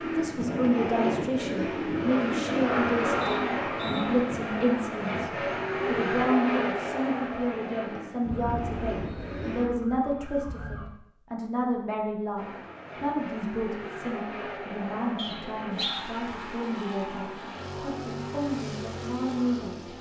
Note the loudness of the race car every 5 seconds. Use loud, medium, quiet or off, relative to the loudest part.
loud, loud, medium, medium.